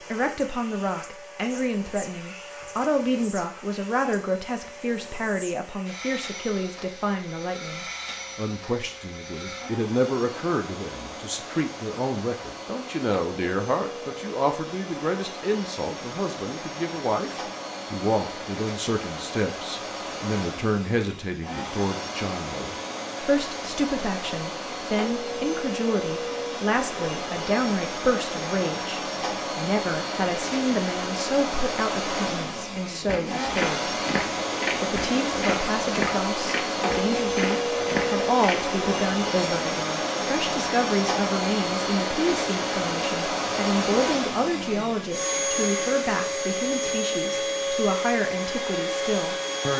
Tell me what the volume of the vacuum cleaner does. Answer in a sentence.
The volume of the vacuum cleaner goes up.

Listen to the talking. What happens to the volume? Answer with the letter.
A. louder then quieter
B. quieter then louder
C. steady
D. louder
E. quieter
C.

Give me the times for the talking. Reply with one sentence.
The talking can be heard from 0.0 to 34.0 s and from 34.8 to 49.7 s.